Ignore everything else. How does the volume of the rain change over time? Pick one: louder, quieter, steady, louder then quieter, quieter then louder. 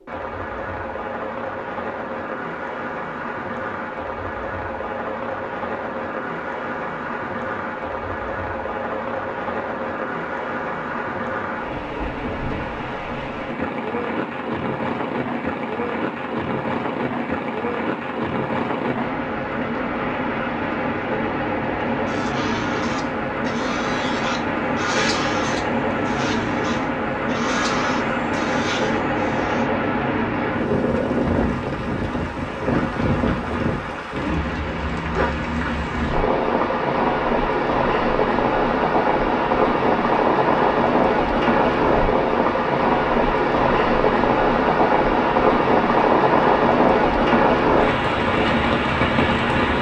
louder.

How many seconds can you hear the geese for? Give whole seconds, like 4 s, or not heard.
8 s.